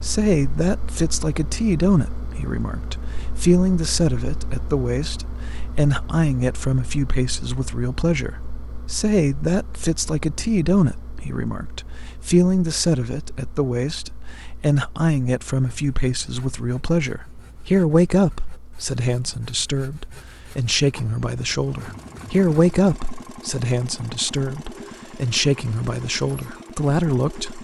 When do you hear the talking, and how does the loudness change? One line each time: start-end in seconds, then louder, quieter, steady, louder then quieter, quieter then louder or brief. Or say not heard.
0.0-27.5 steady.